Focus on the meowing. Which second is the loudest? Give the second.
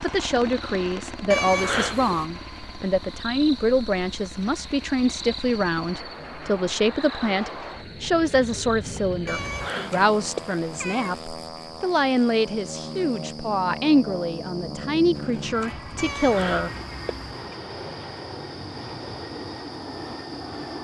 2 s.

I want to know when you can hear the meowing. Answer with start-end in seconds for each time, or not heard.
1.3-2.3, 9.2-11.2, 15.9-17.4.